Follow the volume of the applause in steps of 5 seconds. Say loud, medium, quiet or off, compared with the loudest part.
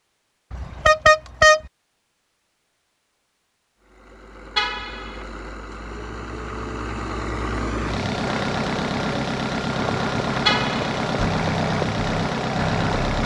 off, loud, loud.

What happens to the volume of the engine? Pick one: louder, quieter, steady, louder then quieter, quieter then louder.
louder.